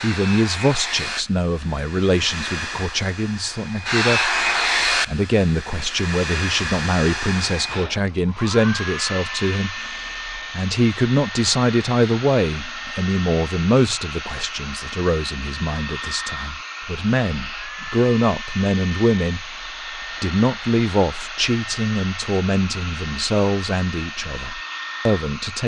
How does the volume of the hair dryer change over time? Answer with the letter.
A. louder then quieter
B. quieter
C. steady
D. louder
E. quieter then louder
B.